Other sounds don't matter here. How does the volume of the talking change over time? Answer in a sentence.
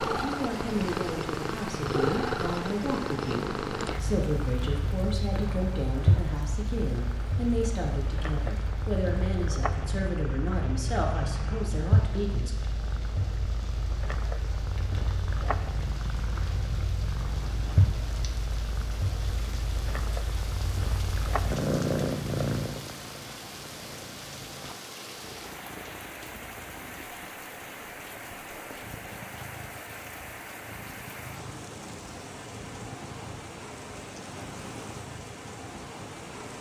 The loudness of the talking stays about the same.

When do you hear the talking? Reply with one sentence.
You can hear the talking from 0.0 to 12.6 s.